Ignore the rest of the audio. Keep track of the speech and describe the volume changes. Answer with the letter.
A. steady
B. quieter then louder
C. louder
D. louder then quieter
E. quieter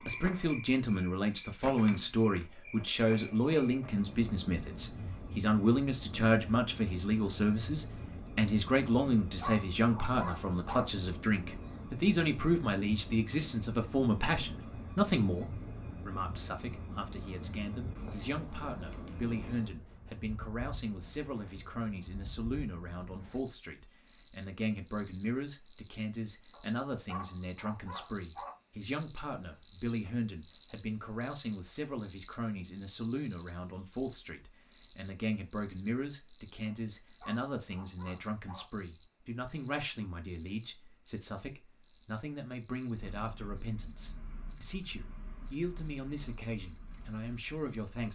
E.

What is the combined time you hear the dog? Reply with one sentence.
You can hear the dog for 6 seconds altogether.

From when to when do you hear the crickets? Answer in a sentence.
You can hear the crickets from 0.0 to 48.1 s.